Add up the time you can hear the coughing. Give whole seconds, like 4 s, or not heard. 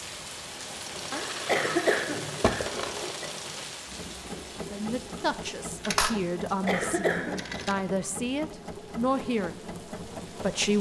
3 s.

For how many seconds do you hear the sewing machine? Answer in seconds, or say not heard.
11 s.